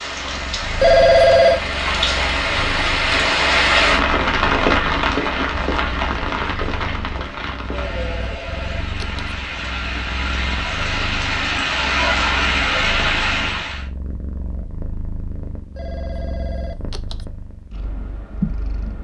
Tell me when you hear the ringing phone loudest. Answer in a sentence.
The volume of the ringing phone peaks at 1 second.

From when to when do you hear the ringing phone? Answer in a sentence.
You can hear the ringing phone from 0.8 to 1.6 s, from 7.8 to 9.3 s and from 15.8 to 17.2 s.